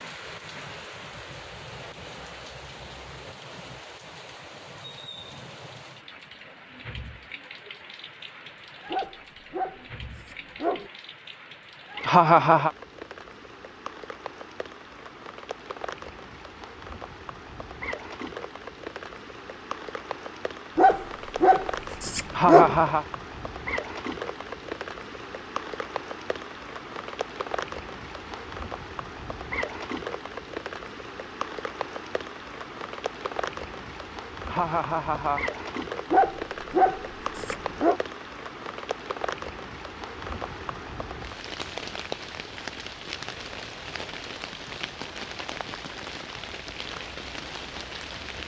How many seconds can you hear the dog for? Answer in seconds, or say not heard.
6 s.